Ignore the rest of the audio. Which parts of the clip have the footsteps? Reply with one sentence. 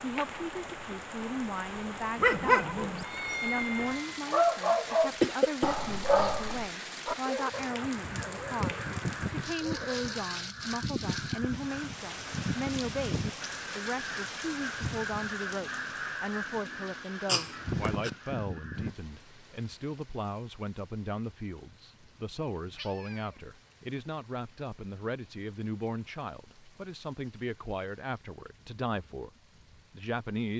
The footsteps can't be heard in this clip.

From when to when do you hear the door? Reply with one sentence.
You can't hear the door here.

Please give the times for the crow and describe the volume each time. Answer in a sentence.
You can hear the crow from 7.5 to 18.9 s, at a steady volume.